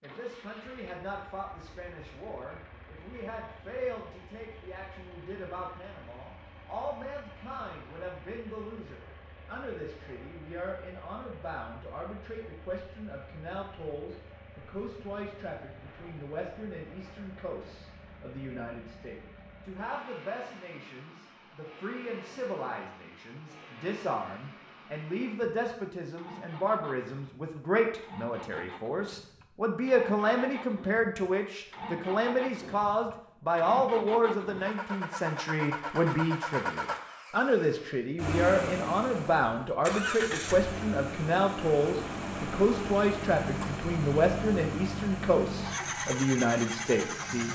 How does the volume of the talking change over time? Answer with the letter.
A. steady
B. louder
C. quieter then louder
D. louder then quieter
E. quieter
B.